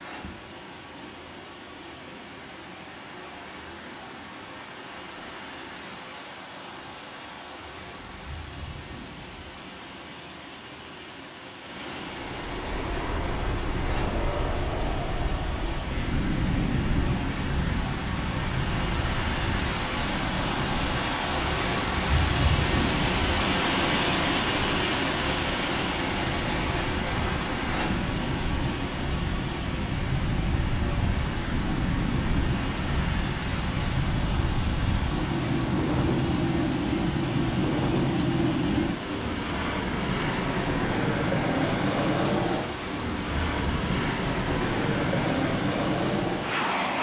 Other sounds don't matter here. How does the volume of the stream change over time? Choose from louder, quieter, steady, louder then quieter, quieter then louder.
louder then quieter.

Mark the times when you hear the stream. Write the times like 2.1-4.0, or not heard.
0.0-46.9.